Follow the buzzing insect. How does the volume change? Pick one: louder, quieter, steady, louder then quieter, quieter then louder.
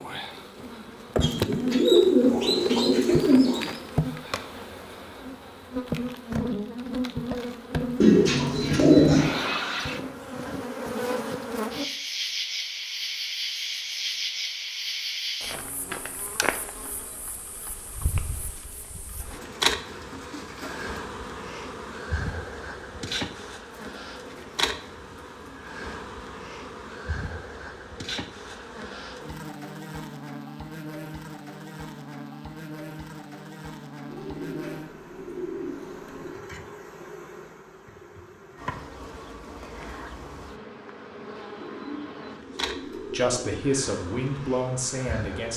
quieter.